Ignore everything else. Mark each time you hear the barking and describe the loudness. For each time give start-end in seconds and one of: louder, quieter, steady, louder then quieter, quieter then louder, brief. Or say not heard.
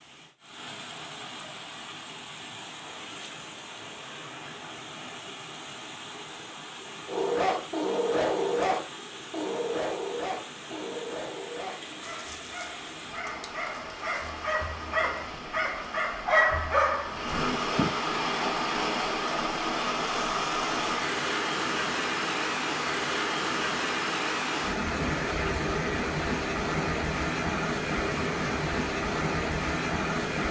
7.0-17.3 quieter then louder.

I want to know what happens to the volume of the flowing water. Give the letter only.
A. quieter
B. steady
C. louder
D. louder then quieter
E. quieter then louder
C.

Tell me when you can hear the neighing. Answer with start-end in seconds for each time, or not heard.
17.3-17.9.